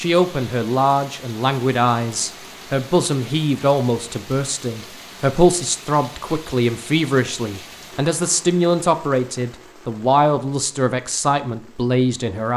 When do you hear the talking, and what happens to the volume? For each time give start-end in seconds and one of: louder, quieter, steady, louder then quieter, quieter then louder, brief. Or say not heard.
0.0-12.5 steady.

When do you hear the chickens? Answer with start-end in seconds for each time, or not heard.
not heard.